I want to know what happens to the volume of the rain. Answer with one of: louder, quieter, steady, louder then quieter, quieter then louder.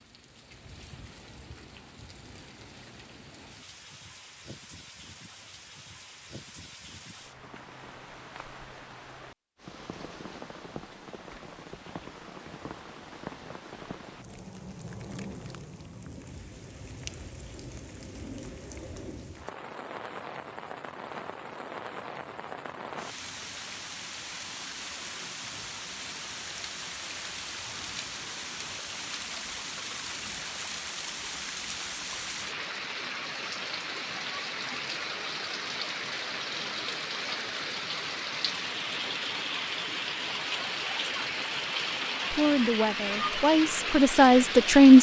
louder.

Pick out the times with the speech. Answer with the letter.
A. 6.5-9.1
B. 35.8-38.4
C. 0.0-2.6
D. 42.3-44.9
D.